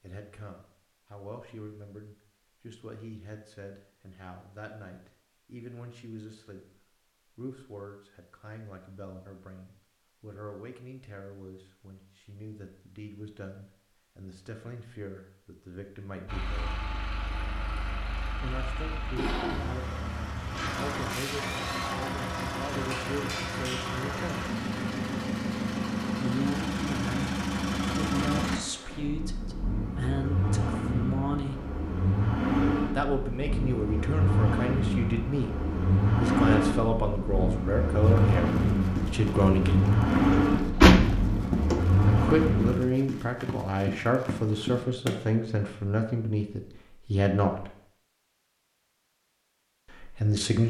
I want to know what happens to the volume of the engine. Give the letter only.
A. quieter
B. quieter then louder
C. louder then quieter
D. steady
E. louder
E.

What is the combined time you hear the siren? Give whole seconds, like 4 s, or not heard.
not heard.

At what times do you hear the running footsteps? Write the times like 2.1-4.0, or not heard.
38.0-45.2.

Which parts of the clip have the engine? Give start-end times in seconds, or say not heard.
16.2-42.8.